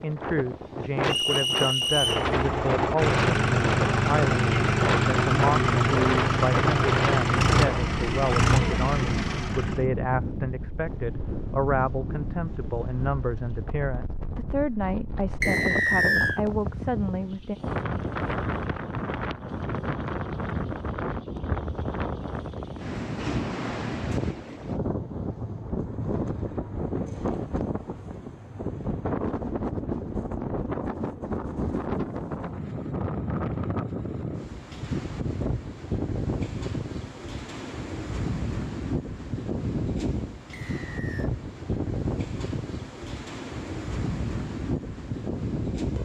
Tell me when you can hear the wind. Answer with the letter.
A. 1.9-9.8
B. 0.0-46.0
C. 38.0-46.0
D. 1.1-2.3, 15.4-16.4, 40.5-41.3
B.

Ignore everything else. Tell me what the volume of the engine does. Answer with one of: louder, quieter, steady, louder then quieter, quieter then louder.
steady.